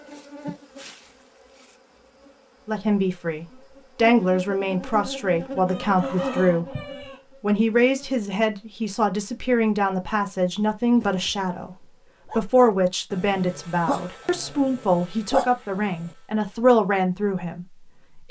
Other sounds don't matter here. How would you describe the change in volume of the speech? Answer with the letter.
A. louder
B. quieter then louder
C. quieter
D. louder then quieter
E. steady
E.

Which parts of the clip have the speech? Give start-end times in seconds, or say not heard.
2.6-6.8, 7.4-18.2.